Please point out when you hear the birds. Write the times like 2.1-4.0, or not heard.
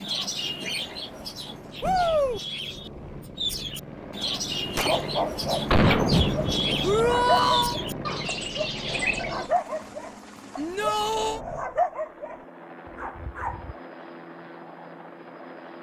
0.0-9.5.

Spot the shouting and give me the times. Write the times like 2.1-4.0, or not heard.
1.8-2.4, 6.8-7.8, 10.6-11.4.